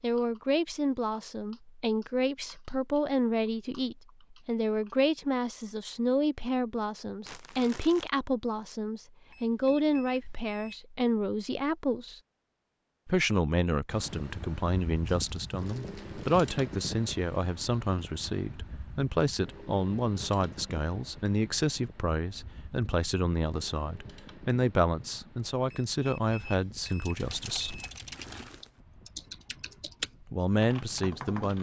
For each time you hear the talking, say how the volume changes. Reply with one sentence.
You can hear the talking from 0.0 to 12.2 s, at a steady volume; from 13.1 to 27.8 s, at a steady volume; and briefly from 30.2 to 31.5 s.